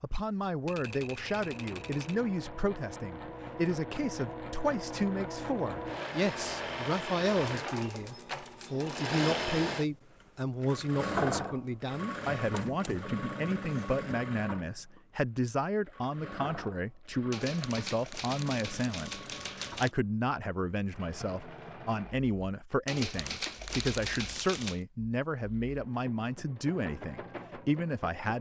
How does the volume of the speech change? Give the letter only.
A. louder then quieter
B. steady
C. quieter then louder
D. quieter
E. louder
B.